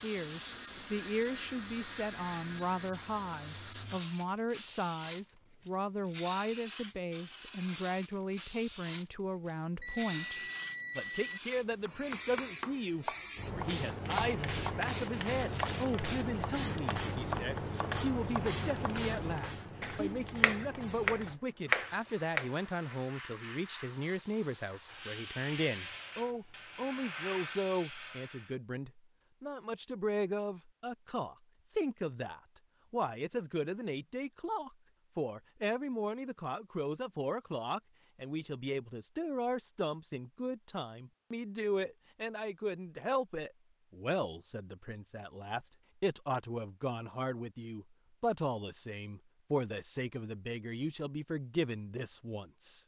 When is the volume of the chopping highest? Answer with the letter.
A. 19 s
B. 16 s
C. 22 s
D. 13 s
C.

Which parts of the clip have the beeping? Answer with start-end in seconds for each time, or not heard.
9.8-11.4.